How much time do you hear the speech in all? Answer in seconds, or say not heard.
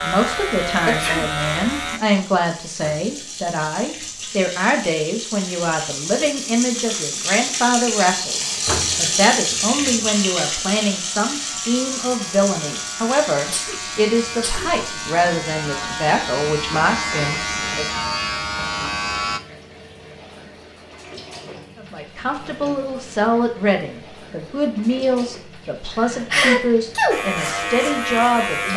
25 s.